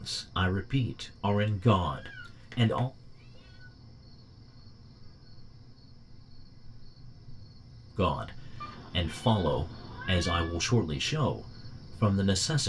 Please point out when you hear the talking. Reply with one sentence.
The talking can be heard from 0.0 to 2.9 s and from 8.0 to 12.6 s.